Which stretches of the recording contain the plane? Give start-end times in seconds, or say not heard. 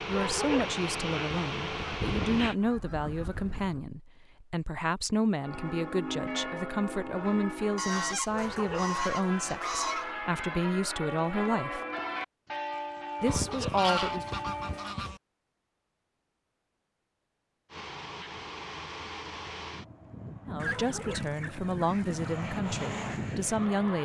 0.0-2.5, 17.7-24.0.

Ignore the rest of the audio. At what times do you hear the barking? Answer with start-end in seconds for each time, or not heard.
0.1-0.8, 8.3-8.9, 13.2-13.8, 20.6-21.3.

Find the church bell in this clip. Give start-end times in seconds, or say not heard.
5.4-15.1.